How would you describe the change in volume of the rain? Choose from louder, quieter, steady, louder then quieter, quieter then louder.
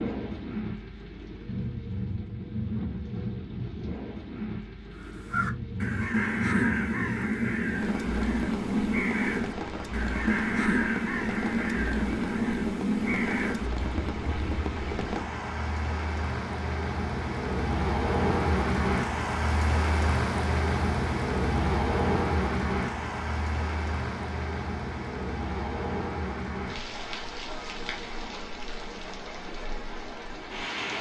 louder then quieter.